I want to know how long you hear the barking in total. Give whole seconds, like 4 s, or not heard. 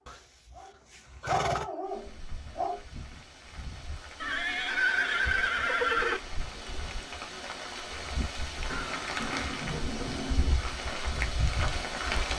3 s.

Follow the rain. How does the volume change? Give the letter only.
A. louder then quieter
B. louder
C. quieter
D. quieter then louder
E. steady
B.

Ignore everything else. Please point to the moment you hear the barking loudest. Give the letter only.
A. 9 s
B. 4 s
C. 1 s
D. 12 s
C.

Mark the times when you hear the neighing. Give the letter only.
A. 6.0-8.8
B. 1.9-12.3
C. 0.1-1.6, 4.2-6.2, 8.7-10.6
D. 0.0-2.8
C.